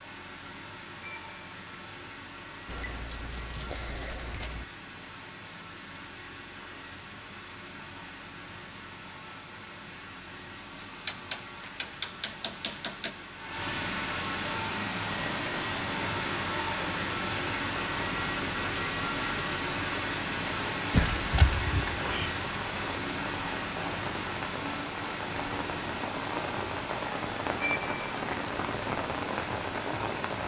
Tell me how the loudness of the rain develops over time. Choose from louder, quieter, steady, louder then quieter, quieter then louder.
louder.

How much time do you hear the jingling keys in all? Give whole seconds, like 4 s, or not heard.
6 s.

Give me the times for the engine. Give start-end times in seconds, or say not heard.
0.0-30.4.